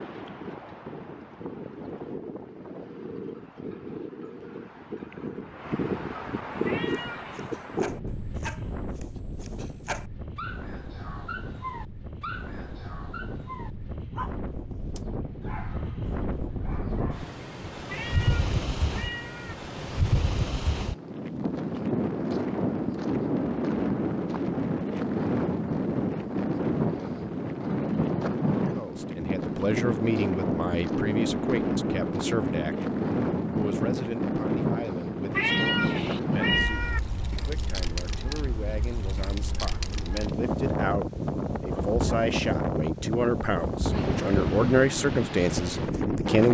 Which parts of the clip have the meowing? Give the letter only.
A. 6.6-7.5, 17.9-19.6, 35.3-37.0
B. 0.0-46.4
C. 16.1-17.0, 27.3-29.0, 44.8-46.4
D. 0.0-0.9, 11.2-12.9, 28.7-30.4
A.